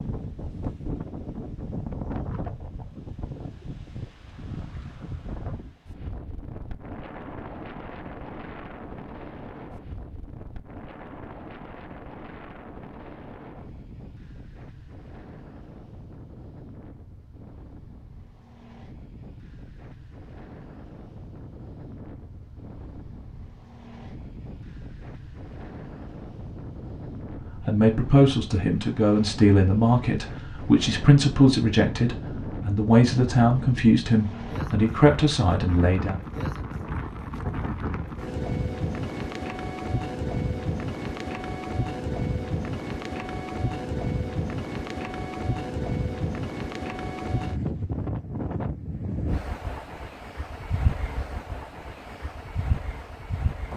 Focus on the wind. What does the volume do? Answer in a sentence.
The volume of the wind goes down, then up.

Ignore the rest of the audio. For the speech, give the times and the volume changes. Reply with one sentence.
The speech can be heard from 27.6 to 36.1 s, at a steady volume.